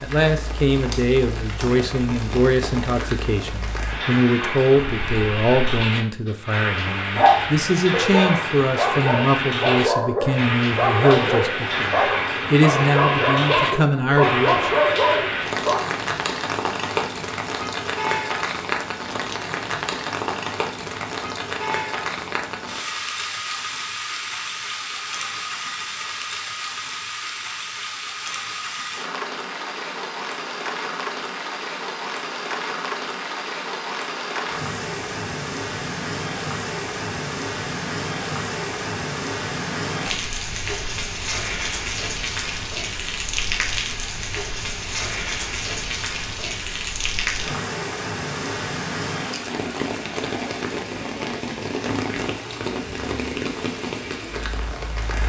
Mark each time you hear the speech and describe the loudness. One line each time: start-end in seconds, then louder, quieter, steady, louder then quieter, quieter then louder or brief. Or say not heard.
0.0-14.8 steady.